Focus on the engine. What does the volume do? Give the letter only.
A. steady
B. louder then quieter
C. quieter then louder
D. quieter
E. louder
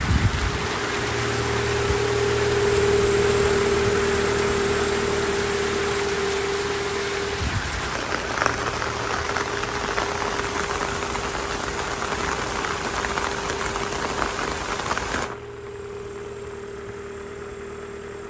D.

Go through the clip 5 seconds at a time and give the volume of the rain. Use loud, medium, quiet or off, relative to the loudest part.
loud, loud, loud, medium.